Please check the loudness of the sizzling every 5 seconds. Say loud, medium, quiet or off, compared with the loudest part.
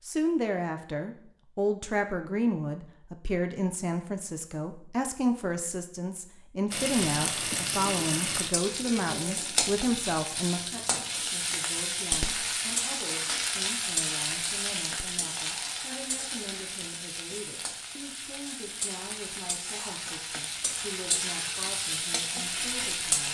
off, loud, loud, medium, loud.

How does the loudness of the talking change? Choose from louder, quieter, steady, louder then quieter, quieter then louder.
quieter.